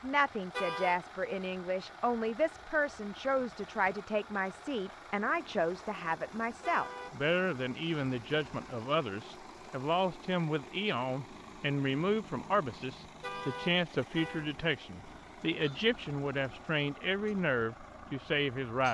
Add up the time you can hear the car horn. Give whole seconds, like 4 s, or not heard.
2 s.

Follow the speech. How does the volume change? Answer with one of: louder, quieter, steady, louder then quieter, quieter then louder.
steady.